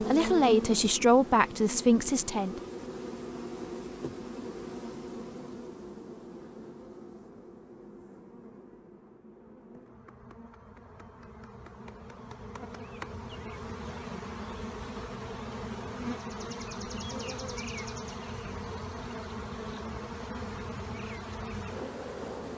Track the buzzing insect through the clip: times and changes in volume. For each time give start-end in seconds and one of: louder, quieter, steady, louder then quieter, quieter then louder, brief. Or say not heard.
0.0-22.5 quieter then louder.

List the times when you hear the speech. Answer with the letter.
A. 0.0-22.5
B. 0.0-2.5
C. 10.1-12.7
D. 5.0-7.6
B.